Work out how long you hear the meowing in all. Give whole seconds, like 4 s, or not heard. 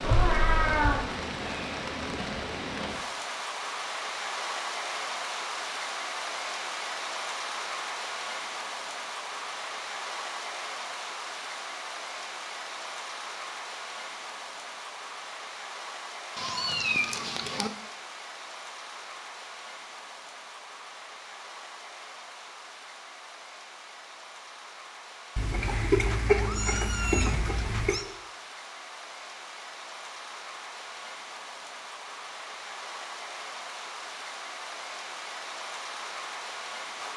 5 s.